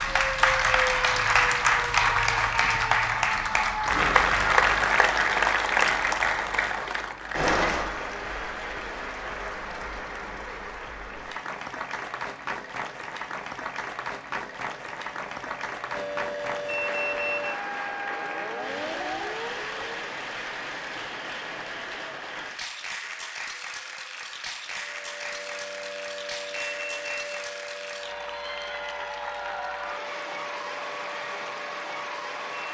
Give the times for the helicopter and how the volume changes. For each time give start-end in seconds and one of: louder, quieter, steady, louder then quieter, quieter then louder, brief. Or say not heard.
not heard.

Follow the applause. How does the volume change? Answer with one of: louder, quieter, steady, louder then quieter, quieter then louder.
quieter.